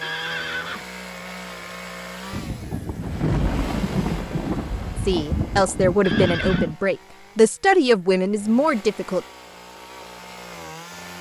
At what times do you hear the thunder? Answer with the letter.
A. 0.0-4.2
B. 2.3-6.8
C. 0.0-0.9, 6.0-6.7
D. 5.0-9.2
B.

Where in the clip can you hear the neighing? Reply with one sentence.
The neighing can be heard from 0.0 to 0.9 s and from 6.0 to 6.7 s.